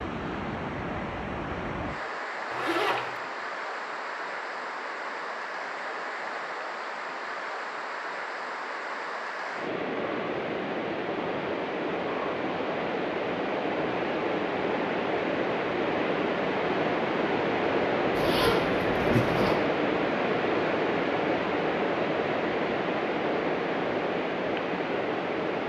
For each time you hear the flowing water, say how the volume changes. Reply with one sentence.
The flowing water can be heard from 0.0 to 25.6 s, getting louder.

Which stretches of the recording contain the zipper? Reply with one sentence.
The zipper can be heard from 2.5 to 3.1 s and from 18.1 to 19.6 s.